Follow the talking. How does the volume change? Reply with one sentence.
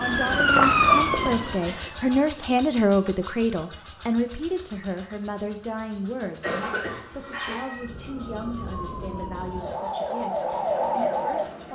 The loudness of the talking goes down.